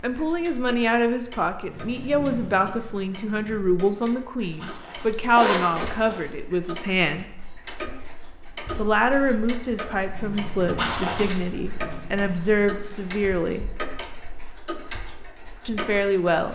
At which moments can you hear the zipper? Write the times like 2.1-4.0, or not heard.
4.6-6.2, 10.8-11.3.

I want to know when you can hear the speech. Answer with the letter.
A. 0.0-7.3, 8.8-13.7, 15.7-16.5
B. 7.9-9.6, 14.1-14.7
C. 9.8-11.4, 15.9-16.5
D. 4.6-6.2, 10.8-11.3
A.